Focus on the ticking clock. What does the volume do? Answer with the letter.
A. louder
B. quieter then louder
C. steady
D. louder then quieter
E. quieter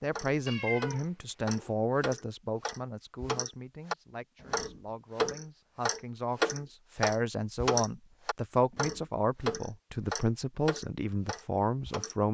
D.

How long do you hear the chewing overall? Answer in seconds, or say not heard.
not heard.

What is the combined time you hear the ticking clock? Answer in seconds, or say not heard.
12 s.